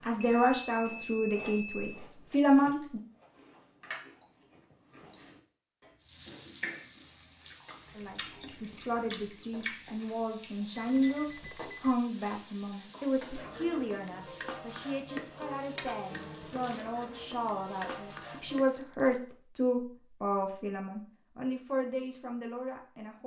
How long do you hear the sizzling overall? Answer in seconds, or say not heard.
13 s.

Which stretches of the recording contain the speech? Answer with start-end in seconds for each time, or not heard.
0.1-3.0, 8.0-23.2.